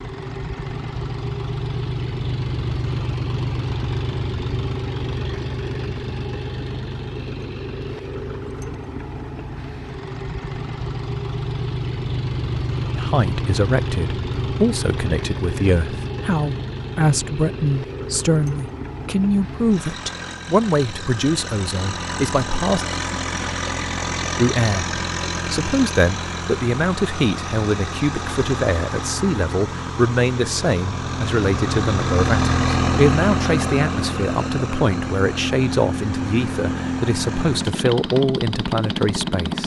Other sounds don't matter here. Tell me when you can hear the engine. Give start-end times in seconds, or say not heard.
0.0-39.6.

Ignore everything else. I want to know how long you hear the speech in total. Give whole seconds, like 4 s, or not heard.
25 s.